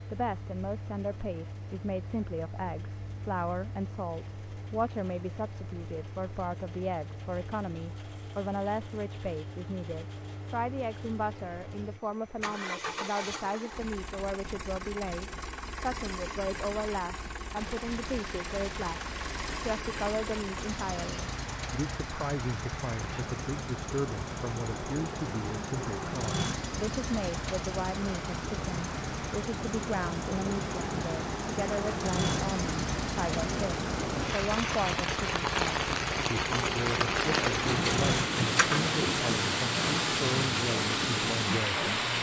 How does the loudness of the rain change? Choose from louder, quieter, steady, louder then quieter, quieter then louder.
louder.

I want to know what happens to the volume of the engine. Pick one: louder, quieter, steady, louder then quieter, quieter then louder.
louder.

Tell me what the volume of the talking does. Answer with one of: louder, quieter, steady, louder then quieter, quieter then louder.
steady.